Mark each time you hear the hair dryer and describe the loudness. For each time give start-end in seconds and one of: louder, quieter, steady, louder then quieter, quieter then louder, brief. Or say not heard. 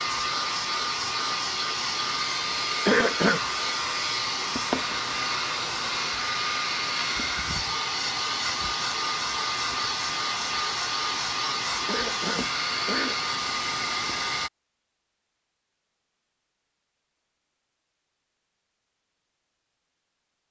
0.0-14.5 steady.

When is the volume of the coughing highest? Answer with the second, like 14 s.
3 s.